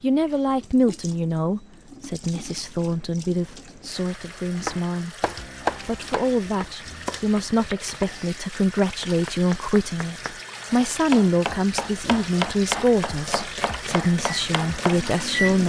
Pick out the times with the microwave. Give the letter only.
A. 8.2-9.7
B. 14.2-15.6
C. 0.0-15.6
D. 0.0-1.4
B.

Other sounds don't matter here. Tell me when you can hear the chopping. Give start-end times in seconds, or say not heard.
4.6-15.1.